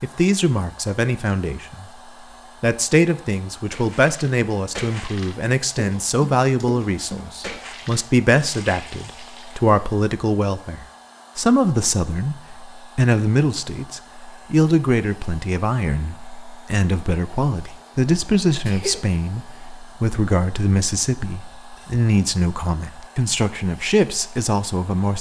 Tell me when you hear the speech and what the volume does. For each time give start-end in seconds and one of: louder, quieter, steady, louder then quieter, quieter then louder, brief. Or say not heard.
0.0-1.9 brief
2.6-25.1 steady.